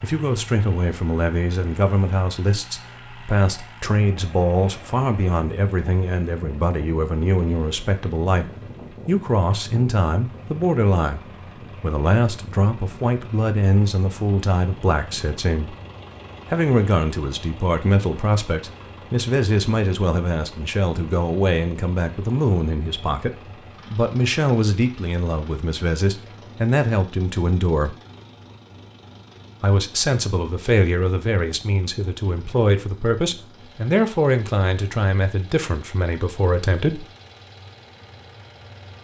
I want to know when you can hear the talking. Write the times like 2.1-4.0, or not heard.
0.0-15.8, 16.5-27.9, 29.6-37.0.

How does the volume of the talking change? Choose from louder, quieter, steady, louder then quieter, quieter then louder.
steady.